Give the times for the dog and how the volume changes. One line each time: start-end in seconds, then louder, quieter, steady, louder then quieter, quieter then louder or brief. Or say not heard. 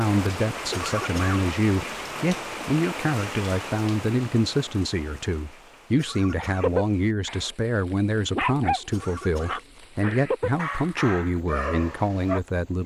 6.6-7.5 brief
8.3-12.4 quieter.